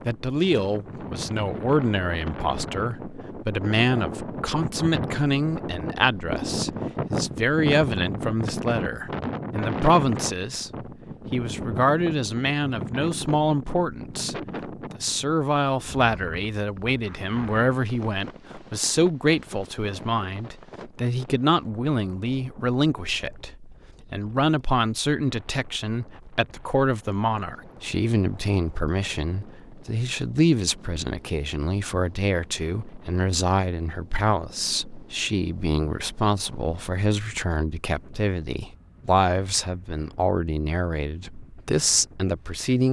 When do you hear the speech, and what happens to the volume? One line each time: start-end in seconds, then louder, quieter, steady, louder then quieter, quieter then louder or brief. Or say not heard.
0.1-42.8 steady.